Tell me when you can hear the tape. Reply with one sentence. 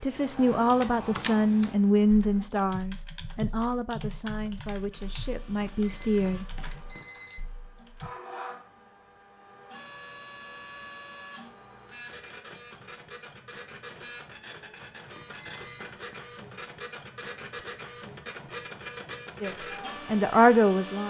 The tape can't be heard in this clip.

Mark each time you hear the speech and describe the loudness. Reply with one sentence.
The speech can be heard from 0.0 to 6.5 s, getting quieter; and briefly from 19.4 to 21.0 s.